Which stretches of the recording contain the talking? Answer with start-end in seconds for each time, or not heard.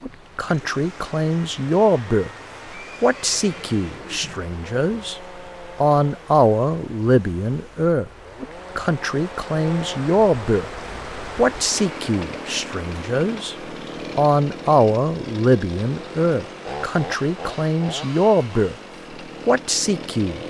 0.0-2.3, 3.0-10.7, 11.3-13.6, 14.2-18.8, 19.4-20.4.